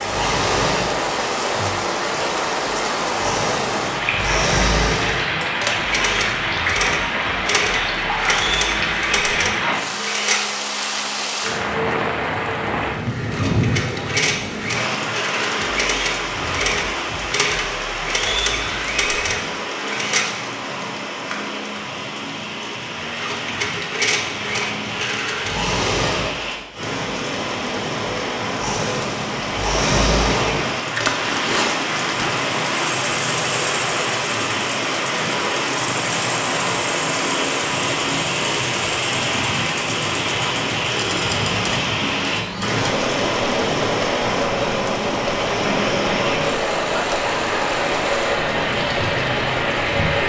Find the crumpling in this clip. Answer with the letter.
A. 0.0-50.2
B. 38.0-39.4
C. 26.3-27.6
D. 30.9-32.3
D.